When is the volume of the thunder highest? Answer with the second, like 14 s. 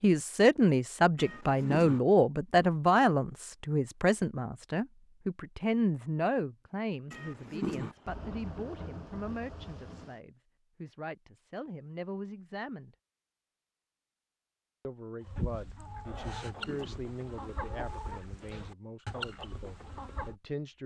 9 s.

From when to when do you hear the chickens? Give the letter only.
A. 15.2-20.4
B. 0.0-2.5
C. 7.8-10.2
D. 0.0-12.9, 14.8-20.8
A.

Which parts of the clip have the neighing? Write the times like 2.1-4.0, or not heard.
not heard.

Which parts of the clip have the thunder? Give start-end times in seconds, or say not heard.
7.8-10.2.